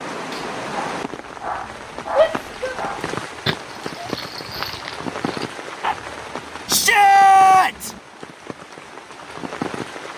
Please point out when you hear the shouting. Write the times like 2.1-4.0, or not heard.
2.1-2.8, 6.7-7.9.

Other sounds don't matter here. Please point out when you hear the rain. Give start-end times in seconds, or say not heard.
0.0-10.1.